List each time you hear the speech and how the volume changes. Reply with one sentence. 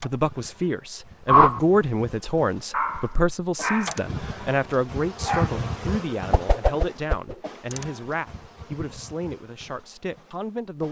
The speech can be heard from 0.0 to 10.8 s, getting quieter.